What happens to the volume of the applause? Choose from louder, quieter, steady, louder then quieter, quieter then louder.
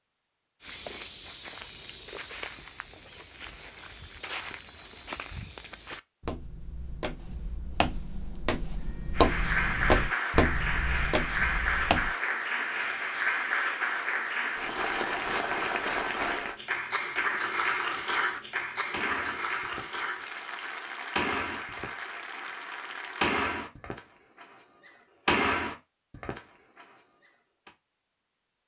quieter.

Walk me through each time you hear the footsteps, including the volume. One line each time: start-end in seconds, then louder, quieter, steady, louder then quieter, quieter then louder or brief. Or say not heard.
0.6-12.2 louder.